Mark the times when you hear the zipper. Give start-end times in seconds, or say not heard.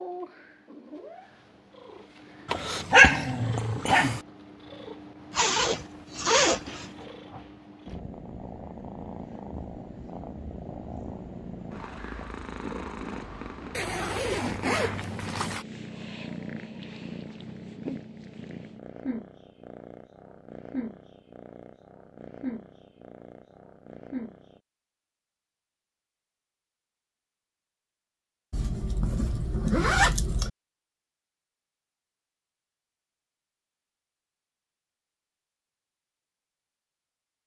5.3-6.9, 13.7-15.7, 28.5-30.5.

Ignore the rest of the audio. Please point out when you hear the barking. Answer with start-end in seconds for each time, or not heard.
2.5-4.2.